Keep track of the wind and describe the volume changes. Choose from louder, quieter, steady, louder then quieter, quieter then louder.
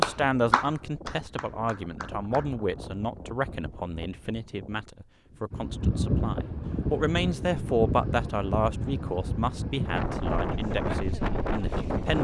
louder.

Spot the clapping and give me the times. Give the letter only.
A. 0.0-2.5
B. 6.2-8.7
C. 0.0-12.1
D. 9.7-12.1
A.